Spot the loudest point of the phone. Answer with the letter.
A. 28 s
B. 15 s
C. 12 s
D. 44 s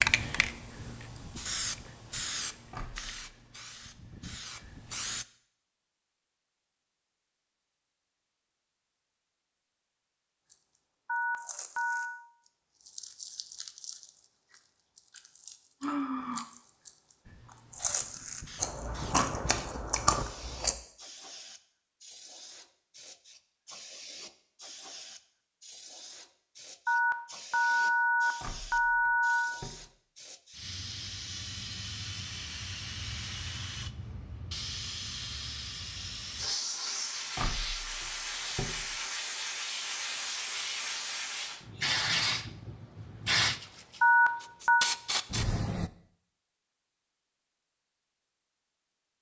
D.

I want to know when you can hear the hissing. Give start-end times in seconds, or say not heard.
0.0-5.2, 17.2-45.9.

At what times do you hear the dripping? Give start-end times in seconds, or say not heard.
not heard.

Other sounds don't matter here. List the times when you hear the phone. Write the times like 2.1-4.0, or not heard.
11.1-12.2, 26.9-29.6, 44.0-44.9.